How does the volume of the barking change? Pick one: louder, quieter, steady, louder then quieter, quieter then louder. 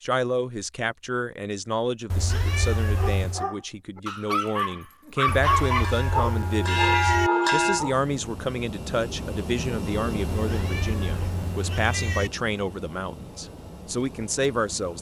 louder then quieter.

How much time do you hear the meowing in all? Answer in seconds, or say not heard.
5 s.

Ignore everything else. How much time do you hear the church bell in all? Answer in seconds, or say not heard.
2 s.